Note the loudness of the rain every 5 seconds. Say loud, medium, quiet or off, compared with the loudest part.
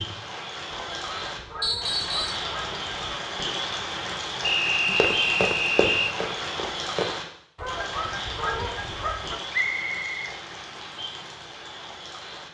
loud, loud, medium.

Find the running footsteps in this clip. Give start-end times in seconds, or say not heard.
4.8-7.2.